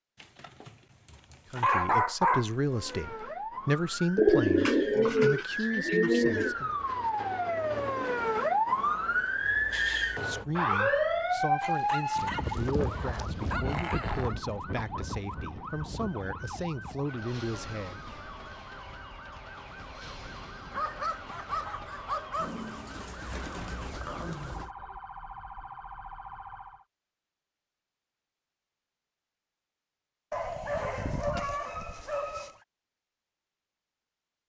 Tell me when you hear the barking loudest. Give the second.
2 s.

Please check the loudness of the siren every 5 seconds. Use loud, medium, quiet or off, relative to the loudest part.
medium, loud, loud, quiet, quiet, quiet, off.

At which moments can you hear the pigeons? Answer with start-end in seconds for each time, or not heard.
4.2-6.5, 22.4-24.8.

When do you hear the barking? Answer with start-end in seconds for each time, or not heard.
0.2-3.0, 11.6-14.3, 20.7-22.6, 30.3-32.5.